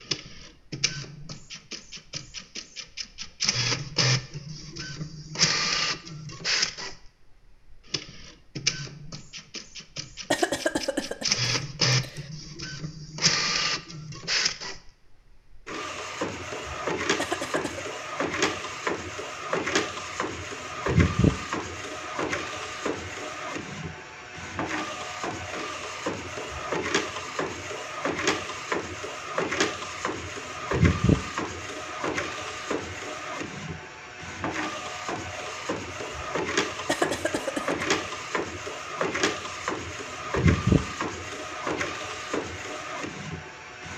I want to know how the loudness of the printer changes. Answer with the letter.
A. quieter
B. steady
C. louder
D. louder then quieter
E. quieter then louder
B.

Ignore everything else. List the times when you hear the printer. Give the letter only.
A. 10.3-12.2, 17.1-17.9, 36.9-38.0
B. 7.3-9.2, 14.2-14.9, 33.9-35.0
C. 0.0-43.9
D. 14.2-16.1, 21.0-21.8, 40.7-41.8
C.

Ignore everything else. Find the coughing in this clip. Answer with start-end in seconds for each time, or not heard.
10.3-12.2, 17.1-17.9, 36.9-38.0.